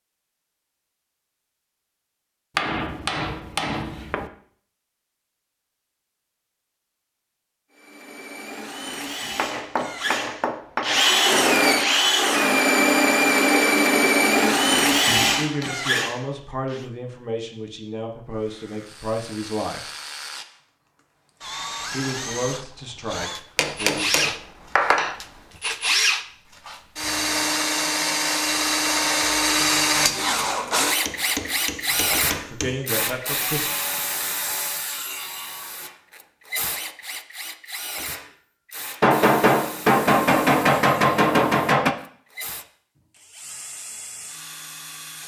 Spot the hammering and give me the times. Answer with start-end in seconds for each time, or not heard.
2.5-4.3, 9.3-11.1, 23.6-25.1, 31.1-32.8, 39.0-42.0.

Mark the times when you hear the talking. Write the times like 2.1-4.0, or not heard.
15.1-19.8, 21.9-24.3, 31.9-33.7.